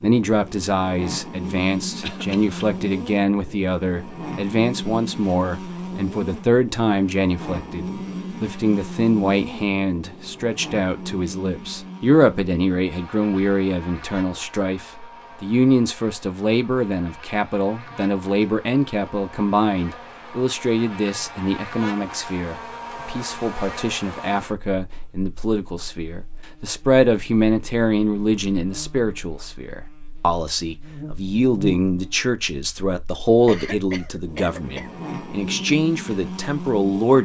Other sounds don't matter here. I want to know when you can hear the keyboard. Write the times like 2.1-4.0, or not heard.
not heard.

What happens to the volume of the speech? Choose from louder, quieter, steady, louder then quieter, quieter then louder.
steady.